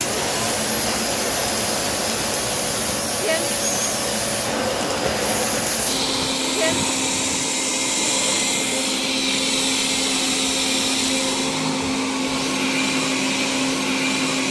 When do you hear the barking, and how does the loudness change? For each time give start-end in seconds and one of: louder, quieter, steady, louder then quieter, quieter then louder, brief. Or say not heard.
not heard.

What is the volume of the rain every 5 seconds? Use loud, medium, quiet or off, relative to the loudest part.
loud, loud, off.